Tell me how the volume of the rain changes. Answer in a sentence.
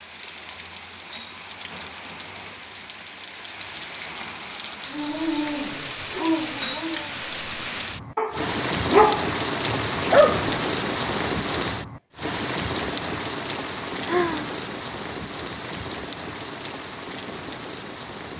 The loudness of the rain goes up, then down.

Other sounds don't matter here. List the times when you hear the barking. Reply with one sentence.
You can hear the barking from 4.9 to 10.5 s.